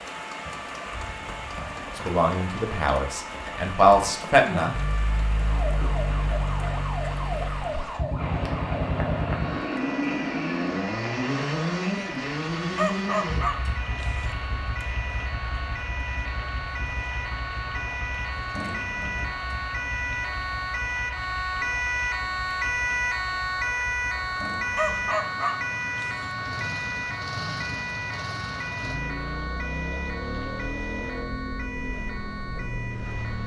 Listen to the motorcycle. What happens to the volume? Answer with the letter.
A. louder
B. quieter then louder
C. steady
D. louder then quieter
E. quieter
B.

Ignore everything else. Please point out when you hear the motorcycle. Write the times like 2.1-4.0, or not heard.
4.7-33.4.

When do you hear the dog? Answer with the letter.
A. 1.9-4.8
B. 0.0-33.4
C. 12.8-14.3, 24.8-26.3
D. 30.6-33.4
C.